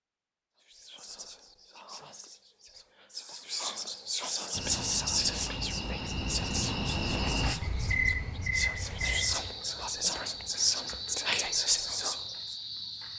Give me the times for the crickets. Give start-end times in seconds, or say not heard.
4.5-13.1.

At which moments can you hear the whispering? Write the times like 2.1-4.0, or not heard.
0.6-12.6.